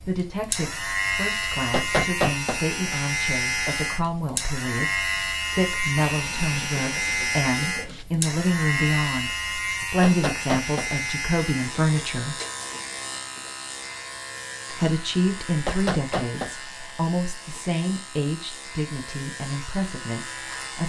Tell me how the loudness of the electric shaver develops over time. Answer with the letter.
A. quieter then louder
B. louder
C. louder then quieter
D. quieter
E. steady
D.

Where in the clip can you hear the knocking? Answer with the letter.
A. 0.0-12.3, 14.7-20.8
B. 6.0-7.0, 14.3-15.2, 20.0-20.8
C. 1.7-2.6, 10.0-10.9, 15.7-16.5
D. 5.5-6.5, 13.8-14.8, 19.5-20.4
C.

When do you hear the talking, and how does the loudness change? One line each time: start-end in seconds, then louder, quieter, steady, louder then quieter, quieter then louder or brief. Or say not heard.
0.0-12.3 louder
14.7-20.8 quieter.